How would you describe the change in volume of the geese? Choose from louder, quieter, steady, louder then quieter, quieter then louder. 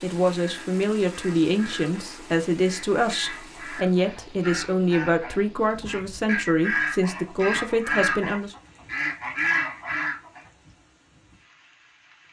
louder.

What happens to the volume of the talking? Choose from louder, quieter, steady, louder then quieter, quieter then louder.
steady.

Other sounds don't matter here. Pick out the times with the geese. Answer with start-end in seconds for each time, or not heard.
0.3-10.4.